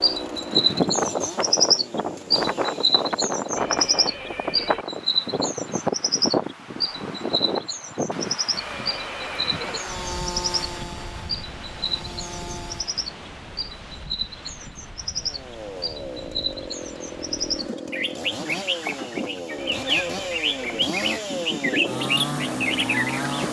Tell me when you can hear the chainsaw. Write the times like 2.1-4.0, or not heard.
0.0-4.0, 9.6-12.9, 15.1-23.4.